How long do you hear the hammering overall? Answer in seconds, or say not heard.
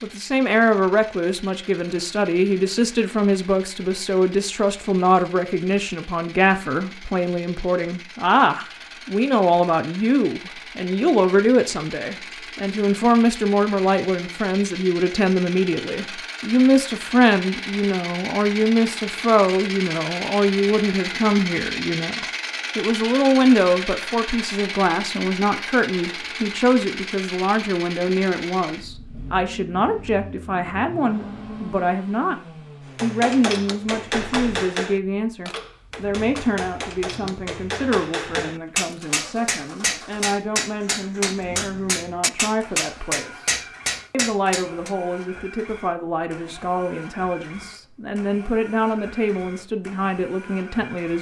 12 s.